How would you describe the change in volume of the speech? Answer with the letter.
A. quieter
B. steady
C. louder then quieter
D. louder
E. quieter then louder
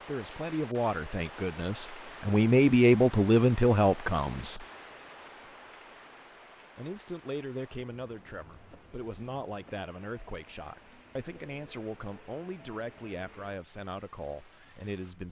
A.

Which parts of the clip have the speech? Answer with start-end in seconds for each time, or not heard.
0.1-4.7, 6.8-15.2.